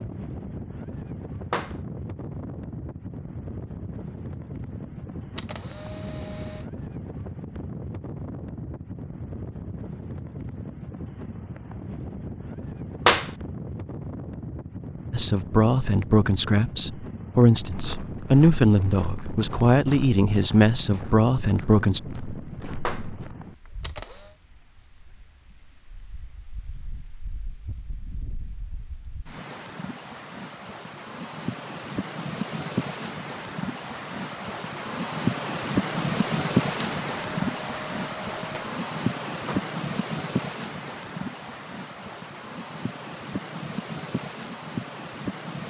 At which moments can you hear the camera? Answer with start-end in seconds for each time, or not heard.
5.3-6.7, 23.8-24.4, 36.8-38.7.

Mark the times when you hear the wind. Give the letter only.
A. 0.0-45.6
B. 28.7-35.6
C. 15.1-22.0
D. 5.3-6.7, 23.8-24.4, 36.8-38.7
A.